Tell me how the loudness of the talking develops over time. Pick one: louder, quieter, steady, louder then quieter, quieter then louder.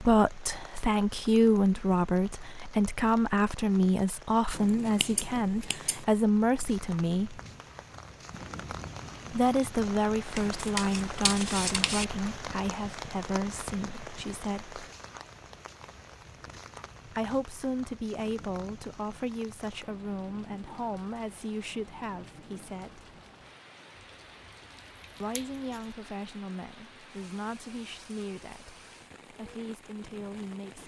quieter.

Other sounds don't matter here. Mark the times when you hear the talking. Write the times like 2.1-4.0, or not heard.
0.0-7.4, 9.3-14.8, 17.1-23.1, 25.2-30.8.